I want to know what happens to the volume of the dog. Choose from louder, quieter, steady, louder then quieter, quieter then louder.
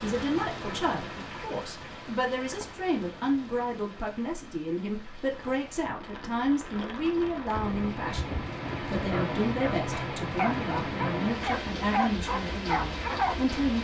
louder.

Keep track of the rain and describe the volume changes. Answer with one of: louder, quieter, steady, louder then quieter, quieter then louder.
quieter then louder.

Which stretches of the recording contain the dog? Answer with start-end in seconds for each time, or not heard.
7.5-13.3.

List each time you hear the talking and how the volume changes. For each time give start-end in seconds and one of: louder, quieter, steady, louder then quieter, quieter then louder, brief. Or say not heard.
0.0-13.7 steady.